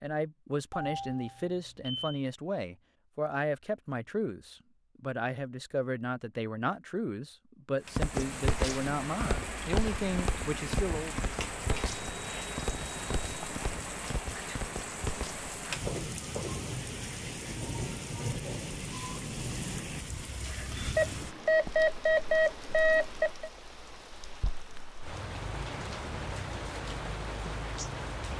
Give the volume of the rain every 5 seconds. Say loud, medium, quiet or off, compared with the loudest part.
off, loud, loud, loud, medium, loud.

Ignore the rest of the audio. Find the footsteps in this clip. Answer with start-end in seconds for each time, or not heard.
8.0-16.6.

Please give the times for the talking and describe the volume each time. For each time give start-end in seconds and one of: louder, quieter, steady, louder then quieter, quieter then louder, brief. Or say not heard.
0.0-11.3 steady.